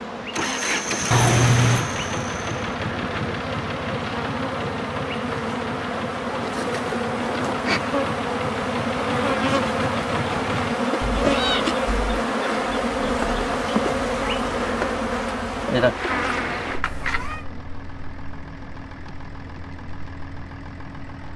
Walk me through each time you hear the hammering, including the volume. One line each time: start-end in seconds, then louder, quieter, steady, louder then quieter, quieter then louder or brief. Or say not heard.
not heard.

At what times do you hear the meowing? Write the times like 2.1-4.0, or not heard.
1.1-1.9, 11.0-12.2, 16.8-17.4.